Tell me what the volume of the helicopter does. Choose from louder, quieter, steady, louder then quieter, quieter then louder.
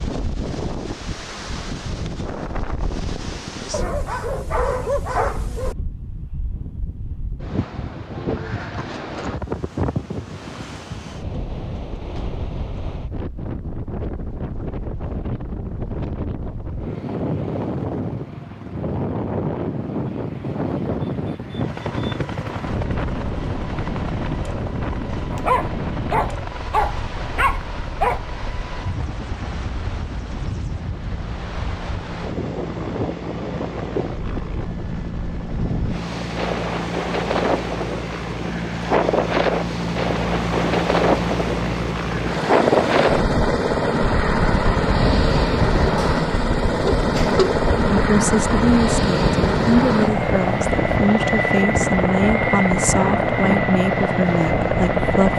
louder.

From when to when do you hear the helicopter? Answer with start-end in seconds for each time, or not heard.
21.5-55.3.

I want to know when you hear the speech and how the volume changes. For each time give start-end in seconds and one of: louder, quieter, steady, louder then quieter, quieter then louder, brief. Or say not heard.
46.8-55.3 steady.